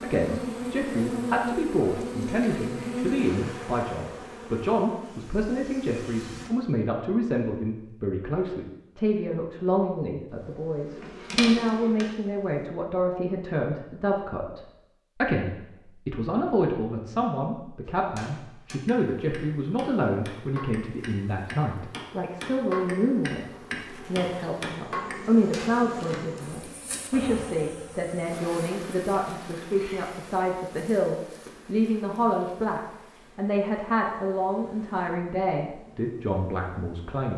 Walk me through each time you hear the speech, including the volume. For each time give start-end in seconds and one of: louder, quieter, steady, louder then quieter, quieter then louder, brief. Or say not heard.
0.0-37.3 steady.